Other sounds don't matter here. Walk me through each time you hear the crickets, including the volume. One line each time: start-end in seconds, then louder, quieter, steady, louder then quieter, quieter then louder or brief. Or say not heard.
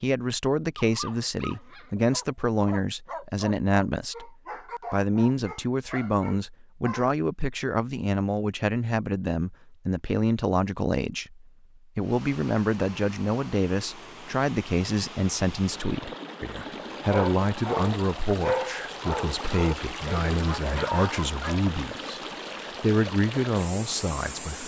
not heard.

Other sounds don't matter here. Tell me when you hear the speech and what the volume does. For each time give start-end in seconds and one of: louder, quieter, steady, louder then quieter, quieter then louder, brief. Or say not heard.
0.0-24.6 steady.